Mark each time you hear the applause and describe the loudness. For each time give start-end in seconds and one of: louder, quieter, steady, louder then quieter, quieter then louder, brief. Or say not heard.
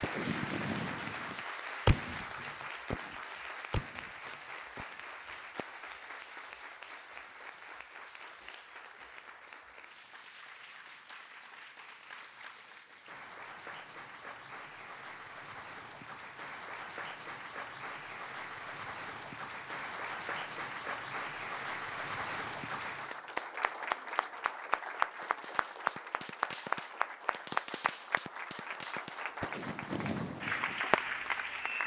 0.0-31.8 quieter then louder.